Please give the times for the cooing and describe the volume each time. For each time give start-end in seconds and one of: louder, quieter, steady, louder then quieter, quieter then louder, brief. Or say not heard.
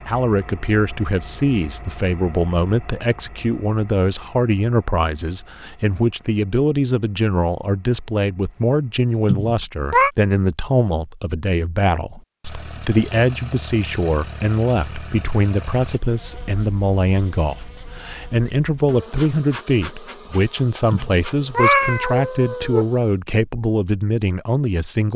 not heard.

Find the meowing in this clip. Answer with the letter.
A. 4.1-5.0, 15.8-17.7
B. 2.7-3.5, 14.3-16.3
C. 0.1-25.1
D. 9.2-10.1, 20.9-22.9
D.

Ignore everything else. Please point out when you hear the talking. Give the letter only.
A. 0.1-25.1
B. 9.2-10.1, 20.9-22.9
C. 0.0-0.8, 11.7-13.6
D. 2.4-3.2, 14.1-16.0
A.